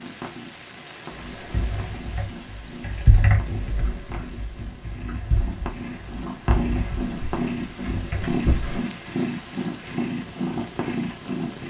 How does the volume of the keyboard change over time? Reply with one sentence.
The volume of the keyboard goes up, then down.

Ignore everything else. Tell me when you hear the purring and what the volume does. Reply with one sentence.
The purring can be heard from 0.0 to 11.6 s, getting louder.